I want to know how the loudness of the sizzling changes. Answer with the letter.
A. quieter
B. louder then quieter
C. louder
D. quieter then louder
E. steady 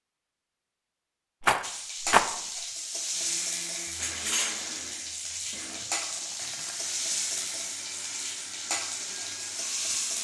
E.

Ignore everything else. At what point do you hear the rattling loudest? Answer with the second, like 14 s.
2 s.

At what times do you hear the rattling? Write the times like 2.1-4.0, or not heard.
1.4-2.3, 5.7-6.8.